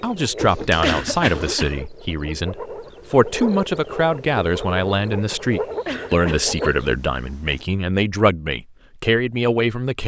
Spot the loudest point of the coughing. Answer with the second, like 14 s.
1 s.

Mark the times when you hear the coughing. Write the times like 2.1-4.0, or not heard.
0.8-1.8, 5.8-6.8.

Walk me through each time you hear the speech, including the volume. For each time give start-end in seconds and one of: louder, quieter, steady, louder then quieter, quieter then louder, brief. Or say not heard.
0.0-10.0 steady.